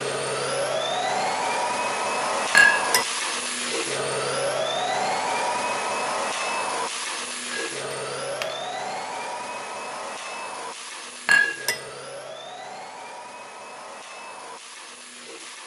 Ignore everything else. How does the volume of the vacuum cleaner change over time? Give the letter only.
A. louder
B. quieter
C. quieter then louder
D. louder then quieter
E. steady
B.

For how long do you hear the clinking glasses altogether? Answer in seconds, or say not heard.
2 s.